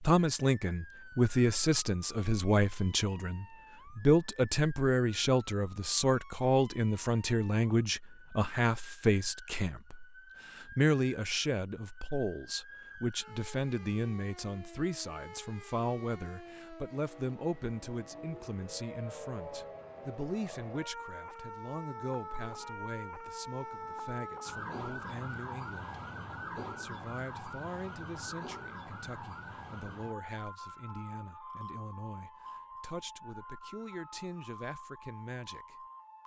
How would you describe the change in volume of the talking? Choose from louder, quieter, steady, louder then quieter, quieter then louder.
quieter.